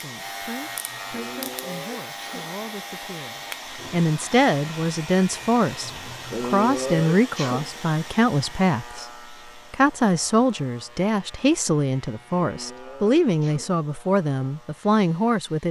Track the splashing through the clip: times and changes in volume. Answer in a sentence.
The splashing can't be heard in this clip.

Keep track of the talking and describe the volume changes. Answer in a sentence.
The volume of the talking goes up.